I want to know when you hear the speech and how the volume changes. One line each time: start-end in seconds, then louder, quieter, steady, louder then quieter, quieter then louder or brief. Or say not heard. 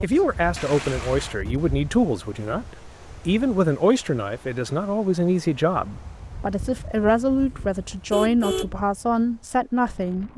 0.0-10.3 steady.